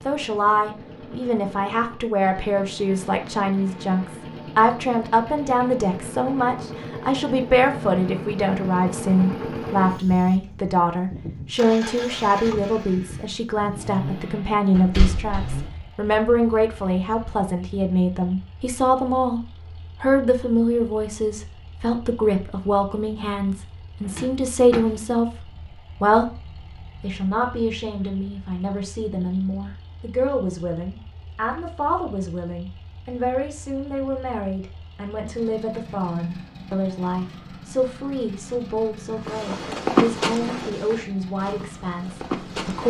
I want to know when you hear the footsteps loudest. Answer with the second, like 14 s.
40 s.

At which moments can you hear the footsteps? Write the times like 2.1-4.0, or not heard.
39.2-42.8.